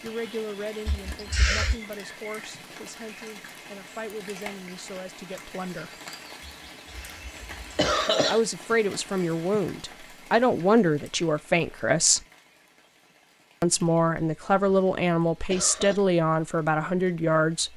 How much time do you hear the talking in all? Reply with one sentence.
You can hear the talking for 14 seconds altogether.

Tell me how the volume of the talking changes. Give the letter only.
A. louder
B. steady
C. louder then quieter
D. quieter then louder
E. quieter
A.